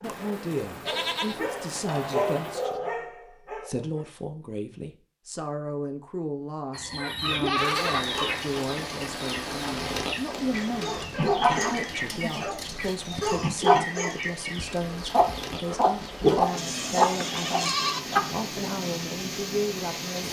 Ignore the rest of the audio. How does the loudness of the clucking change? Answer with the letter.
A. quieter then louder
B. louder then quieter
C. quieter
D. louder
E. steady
D.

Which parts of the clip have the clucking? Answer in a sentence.
You can hear the clucking from 6.7 to 18.2 s.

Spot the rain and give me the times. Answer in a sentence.
The rain can be heard from 7.5 to 20.2 s.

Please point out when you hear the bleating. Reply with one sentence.
The bleating can be heard from 0.0 to 2.8 s, from 7.2 to 8.1 s, from 11.1 to 13.3 s and from 16.5 to 18.0 s.